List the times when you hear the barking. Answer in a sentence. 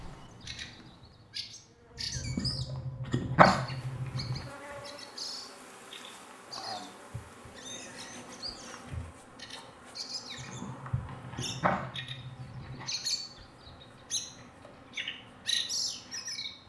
You can hear the barking from 2.1 to 4.5 s and from 10.3 to 12.9 s.